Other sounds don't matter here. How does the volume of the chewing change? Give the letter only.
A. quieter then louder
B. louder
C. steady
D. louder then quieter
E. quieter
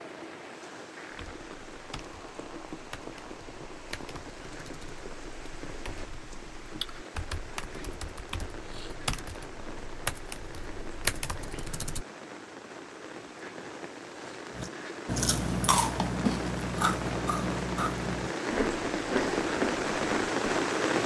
E.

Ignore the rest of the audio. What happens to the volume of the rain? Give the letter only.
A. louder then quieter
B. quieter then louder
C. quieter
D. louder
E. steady
D.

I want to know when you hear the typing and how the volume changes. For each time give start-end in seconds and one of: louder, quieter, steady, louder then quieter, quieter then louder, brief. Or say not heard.
1.1-12.1 louder.